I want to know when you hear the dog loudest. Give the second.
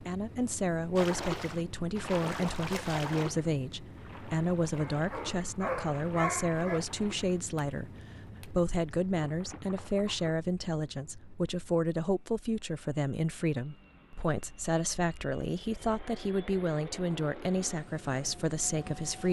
6 s.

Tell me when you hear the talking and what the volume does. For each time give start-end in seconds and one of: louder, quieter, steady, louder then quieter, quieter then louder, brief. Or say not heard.
0.0-19.2 steady.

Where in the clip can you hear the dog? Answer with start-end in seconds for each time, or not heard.
4.8-6.8.